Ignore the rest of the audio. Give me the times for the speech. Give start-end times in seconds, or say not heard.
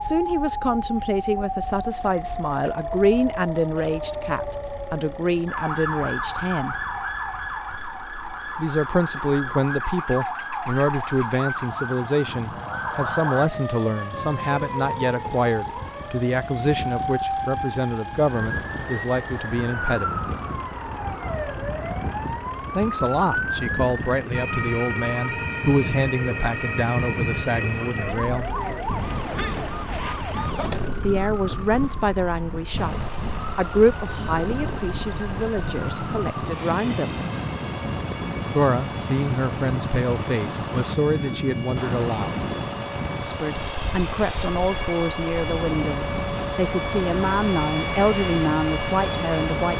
0.0-6.8, 8.6-20.2, 22.8-28.5, 31.0-37.2, 38.5-42.5, 43.2-49.7.